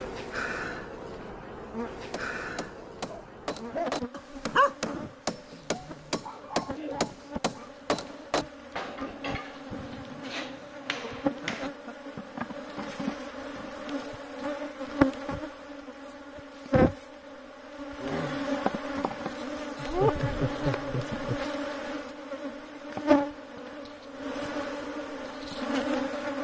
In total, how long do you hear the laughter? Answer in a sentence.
You can hear the laughter for 5 seconds altogether.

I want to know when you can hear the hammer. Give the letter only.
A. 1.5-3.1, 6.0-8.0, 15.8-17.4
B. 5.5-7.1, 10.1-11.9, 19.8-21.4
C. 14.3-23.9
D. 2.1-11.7
D.